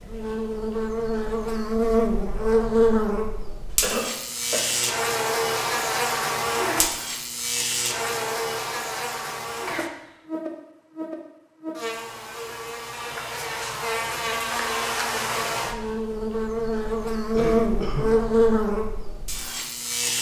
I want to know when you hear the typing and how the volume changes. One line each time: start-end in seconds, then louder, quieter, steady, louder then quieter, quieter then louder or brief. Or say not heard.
not heard.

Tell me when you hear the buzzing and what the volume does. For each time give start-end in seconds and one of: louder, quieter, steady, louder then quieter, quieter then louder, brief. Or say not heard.
0.0-20.1 quieter then louder.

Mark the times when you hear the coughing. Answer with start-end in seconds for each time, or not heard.
3.8-4.7, 9.7-10.1, 17.3-18.1.